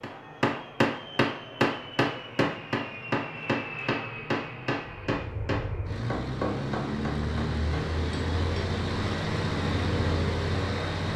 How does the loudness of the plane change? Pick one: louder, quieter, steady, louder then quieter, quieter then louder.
louder.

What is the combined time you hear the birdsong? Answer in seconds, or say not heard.
not heard.